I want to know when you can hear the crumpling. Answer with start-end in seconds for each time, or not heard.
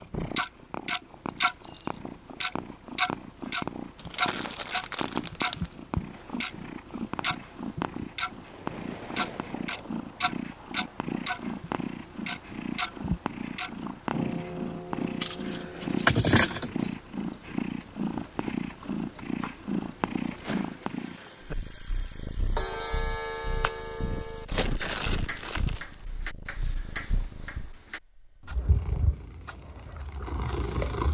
4.0-5.8, 23.6-25.9.